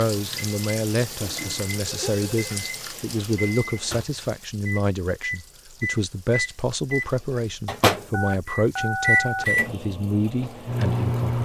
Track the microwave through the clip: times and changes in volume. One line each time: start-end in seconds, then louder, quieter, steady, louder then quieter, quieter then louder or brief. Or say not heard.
0.1-11.3 louder.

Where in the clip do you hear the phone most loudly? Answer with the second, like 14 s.
9 s.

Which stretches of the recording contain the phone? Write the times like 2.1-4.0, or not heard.
1.2-2.5, 8.1-9.4.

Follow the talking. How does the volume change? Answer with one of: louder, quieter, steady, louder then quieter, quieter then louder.
steady.